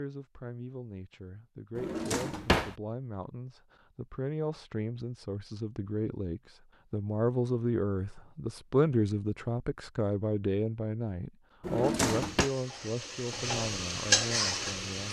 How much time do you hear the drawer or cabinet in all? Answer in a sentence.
The drawer or cabinet can be heard for 2 seconds in total.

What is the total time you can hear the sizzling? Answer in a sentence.
You can hear the sizzling for 3 seconds altogether.